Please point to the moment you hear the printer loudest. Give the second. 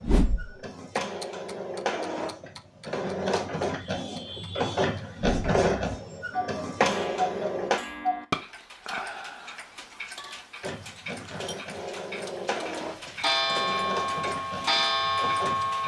5 s.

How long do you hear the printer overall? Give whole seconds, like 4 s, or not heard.
13 s.